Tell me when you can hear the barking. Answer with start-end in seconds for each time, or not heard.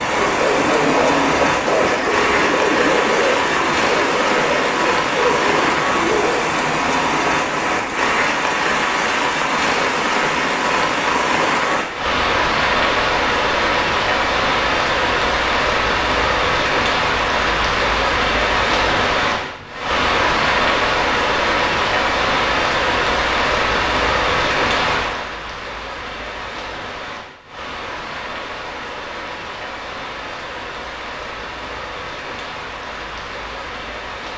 0.0-6.5.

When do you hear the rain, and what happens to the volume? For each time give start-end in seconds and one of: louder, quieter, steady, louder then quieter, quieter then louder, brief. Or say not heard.
0.0-34.3 quieter.